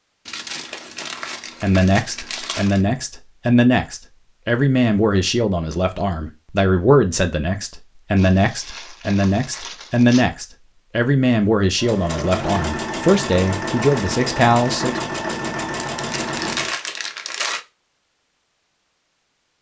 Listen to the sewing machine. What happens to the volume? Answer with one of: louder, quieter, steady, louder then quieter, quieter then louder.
steady.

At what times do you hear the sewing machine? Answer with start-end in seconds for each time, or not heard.
11.8-16.8.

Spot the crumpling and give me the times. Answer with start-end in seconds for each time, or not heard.
0.2-2.8, 8.2-10.2, 15.8-17.6.